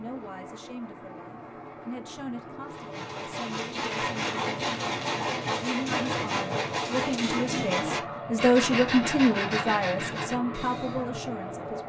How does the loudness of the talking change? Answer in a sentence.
The volume of the talking goes up, then down.